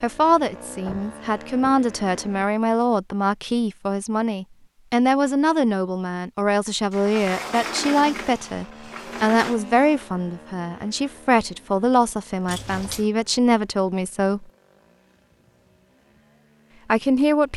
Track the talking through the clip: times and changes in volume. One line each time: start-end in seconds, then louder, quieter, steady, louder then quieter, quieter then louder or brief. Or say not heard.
0.0-14.4 steady
16.9-17.5 brief.